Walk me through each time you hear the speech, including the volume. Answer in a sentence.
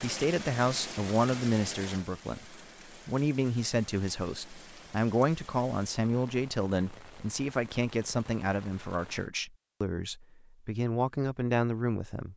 The speech can be heard from 0.0 to 12.3 s, at a steady volume.